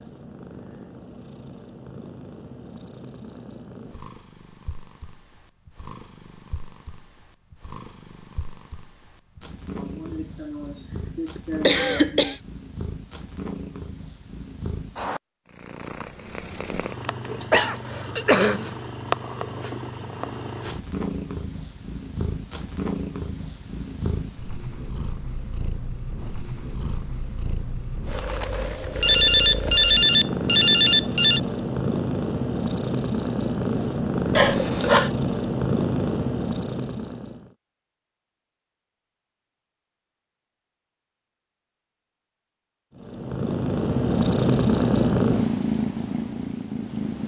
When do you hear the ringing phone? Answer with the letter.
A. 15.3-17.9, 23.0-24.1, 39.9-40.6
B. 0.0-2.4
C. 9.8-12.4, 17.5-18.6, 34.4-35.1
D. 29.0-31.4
D.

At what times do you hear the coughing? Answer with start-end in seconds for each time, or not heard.
9.8-12.4, 17.5-18.6, 34.4-35.1.